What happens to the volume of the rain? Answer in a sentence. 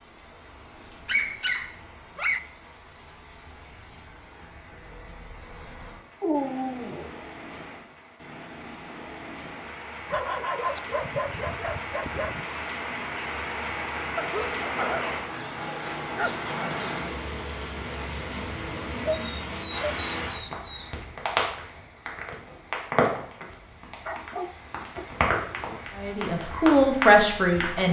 The loudness of the rain goes up.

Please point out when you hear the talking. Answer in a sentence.
The talking can be heard from 25.9 to 27.8 s.